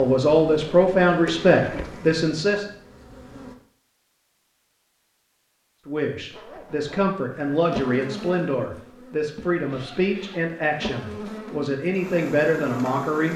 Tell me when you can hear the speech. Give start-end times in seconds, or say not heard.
0.0-2.6, 5.8-13.3.